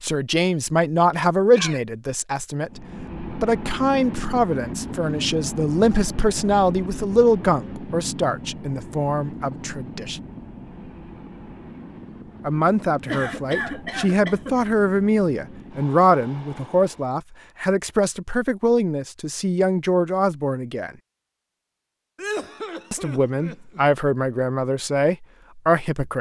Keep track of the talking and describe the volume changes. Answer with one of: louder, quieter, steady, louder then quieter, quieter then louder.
steady.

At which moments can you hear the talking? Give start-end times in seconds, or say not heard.
0.0-10.2, 12.4-20.9, 22.9-26.1.